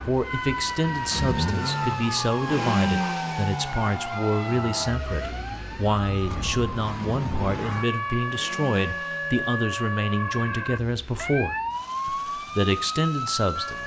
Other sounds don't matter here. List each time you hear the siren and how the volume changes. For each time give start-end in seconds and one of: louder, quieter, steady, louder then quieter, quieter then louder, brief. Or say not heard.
0.0-13.8 steady.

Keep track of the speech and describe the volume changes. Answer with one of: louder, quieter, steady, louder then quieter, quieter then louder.
steady.